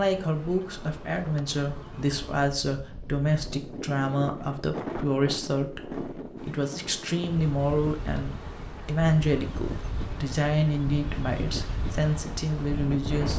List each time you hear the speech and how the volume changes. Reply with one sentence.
You can hear the speech from 0.0 to 13.3 s, at a steady volume.